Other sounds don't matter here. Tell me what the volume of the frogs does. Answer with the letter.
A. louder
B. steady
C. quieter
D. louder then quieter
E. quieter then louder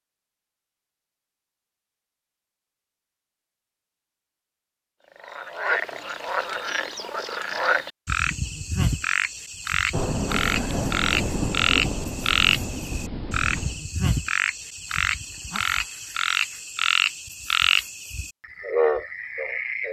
B.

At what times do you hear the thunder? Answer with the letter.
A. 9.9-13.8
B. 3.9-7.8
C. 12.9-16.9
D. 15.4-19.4
A.